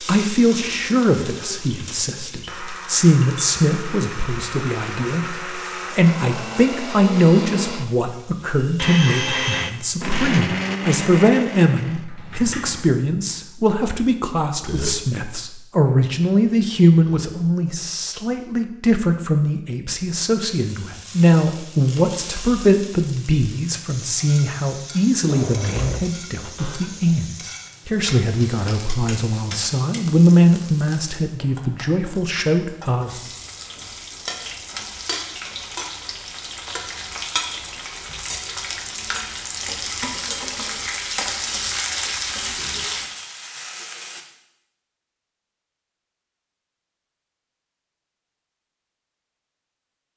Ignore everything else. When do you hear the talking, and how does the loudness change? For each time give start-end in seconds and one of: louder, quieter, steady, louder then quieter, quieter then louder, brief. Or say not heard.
0.0-33.1 steady.